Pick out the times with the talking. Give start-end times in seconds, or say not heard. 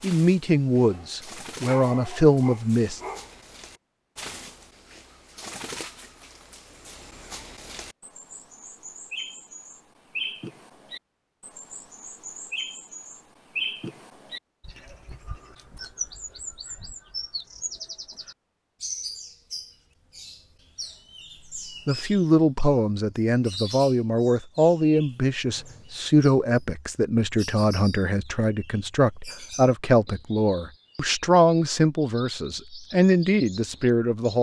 0.0-3.0, 21.9-34.3.